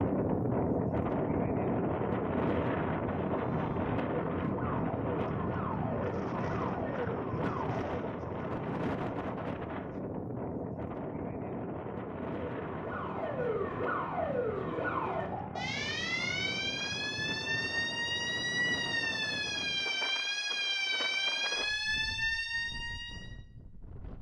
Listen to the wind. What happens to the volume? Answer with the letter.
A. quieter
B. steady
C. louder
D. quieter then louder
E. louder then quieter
A.